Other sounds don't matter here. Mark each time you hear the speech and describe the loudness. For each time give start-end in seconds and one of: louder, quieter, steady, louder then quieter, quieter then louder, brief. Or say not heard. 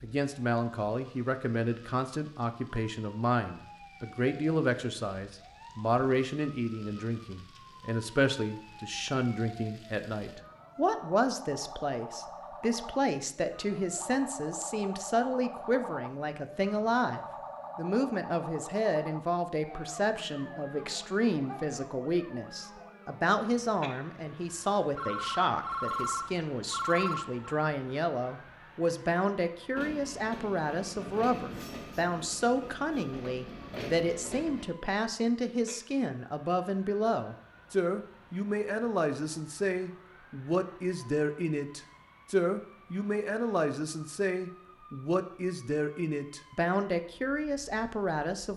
0.0-48.5 steady.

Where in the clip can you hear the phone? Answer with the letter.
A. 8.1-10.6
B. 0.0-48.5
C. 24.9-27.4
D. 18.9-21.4
C.